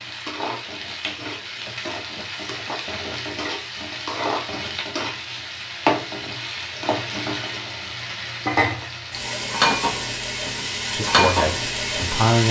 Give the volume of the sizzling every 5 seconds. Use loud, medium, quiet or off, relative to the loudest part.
medium, loud, loud.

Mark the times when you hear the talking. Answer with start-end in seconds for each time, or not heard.
10.9-12.4.